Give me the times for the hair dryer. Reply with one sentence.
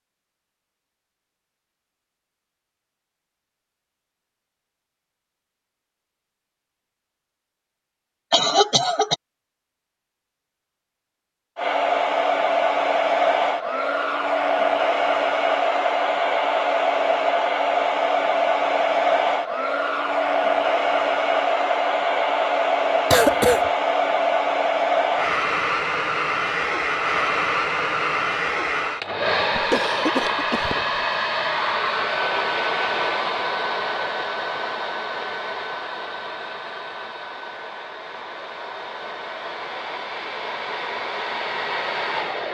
The hair dryer can be heard from 11.6 to 42.5 s.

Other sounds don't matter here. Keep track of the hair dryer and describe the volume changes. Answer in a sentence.
The volume of the hair dryer goes down.